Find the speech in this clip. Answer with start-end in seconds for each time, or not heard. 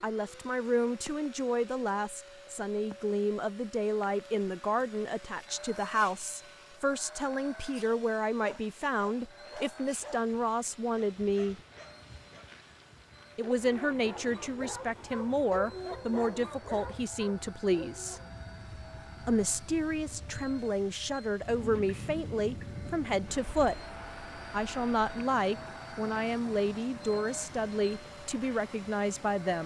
0.0-11.6, 13.3-18.2, 19.2-23.8, 24.5-29.6.